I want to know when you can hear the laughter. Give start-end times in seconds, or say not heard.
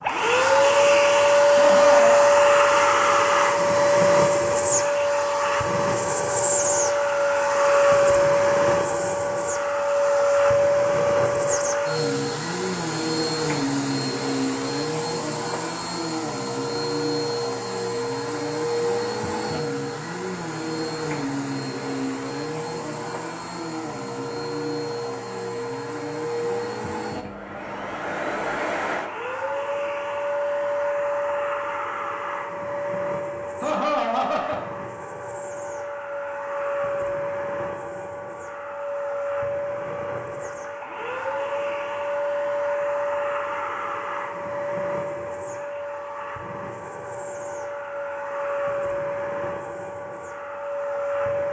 1.6-2.2, 33.6-34.8.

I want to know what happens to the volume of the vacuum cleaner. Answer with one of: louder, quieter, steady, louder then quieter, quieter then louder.
quieter.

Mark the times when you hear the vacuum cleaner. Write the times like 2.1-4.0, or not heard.
0.0-51.4.